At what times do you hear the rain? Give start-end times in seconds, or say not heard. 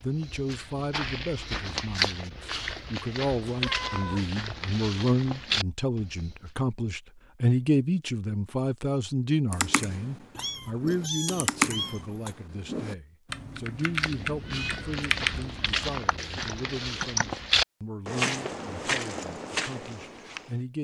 not heard.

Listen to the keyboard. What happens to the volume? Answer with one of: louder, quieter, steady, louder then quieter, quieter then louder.
louder then quieter.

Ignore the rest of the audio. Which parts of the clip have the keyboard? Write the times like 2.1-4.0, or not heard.
9.5-17.2.